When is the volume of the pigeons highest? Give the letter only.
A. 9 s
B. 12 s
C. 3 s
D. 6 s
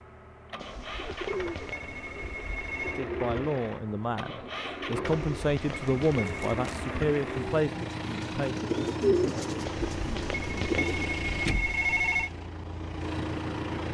A.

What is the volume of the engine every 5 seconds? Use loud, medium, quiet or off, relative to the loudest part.
medium, loud, loud.